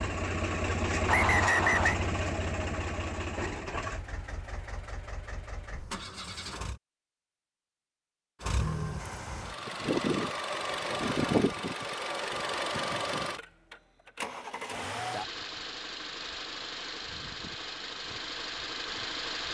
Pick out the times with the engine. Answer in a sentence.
You can hear the engine from 0.0 to 6.8 s and from 8.4 to 19.4 s.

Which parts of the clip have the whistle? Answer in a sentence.
The whistle can be heard from 1.1 to 2.0 s.